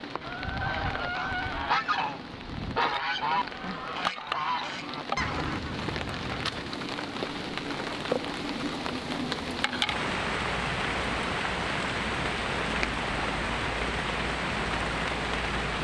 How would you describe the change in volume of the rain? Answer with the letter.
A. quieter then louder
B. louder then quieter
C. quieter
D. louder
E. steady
D.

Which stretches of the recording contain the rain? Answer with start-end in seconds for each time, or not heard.
0.0-15.7.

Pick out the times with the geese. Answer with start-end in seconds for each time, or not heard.
0.1-6.7.